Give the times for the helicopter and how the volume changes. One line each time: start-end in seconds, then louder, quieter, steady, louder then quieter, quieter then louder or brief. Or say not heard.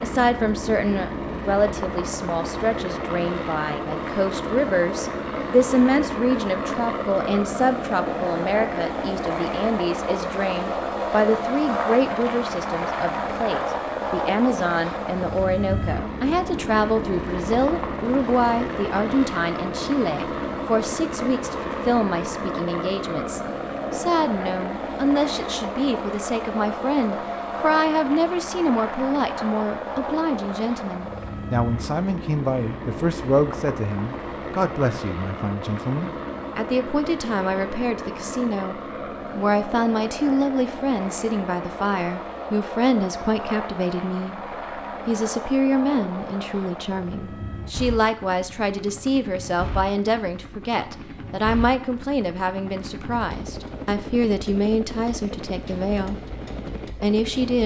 0.0-57.6 quieter.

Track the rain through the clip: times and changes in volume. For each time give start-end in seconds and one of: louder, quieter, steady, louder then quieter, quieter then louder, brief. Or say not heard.
not heard.